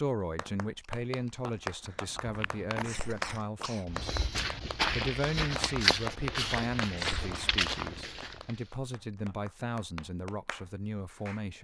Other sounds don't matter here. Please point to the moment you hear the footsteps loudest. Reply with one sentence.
The volume of the footsteps peaks at 6 seconds.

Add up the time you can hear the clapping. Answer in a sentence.
The clapping can be heard for 11 seconds in total.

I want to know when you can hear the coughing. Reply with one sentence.
You can hear the coughing from 2.8 to 3.9 s and from 7.0 to 7.5 s.